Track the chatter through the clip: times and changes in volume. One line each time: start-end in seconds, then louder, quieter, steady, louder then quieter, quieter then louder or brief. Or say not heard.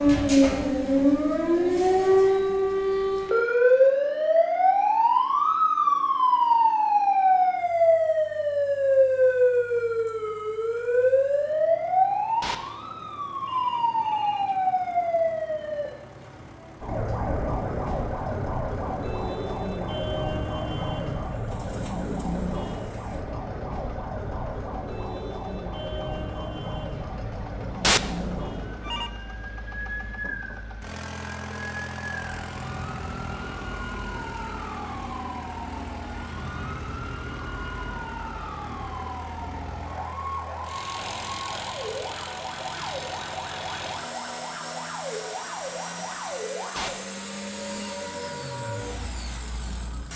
not heard.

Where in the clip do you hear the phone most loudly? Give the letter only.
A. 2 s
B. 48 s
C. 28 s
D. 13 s
C.